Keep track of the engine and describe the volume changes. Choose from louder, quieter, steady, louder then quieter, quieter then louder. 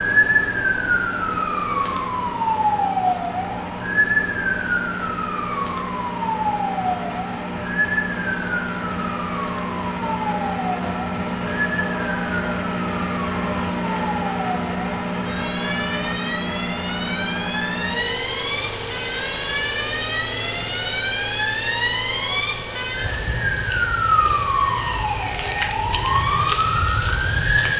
louder then quieter.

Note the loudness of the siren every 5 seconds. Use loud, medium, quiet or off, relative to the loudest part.
loud, medium, medium, medium, loud, loud.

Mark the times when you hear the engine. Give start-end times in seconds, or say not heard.
0.0-27.7.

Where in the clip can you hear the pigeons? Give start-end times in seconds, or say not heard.
not heard.